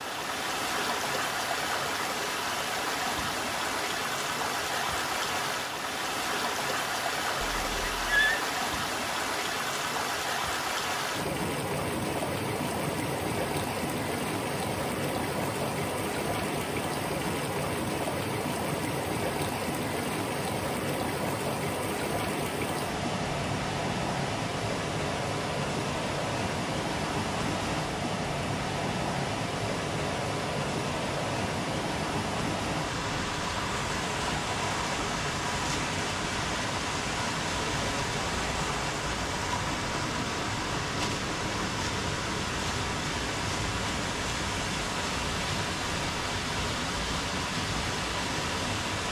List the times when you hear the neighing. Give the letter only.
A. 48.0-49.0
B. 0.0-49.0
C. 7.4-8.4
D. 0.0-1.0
C.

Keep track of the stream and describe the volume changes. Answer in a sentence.
The volume of the stream stays about the same.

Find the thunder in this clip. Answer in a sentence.
The thunder can't be heard in this clip.